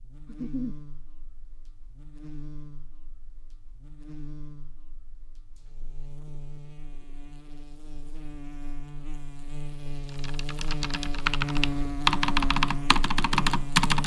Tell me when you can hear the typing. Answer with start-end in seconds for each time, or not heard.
10.1-14.0.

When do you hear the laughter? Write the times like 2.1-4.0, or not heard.
0.2-0.8.